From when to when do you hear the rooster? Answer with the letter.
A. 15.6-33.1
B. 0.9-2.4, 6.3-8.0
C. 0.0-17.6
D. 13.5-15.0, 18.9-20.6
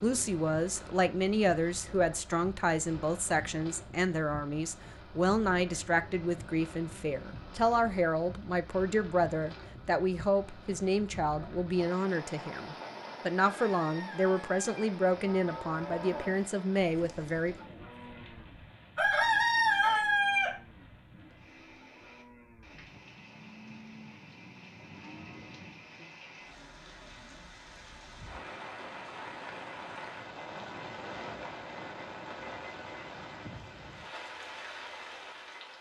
D.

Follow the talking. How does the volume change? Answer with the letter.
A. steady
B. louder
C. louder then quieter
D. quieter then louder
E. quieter
A.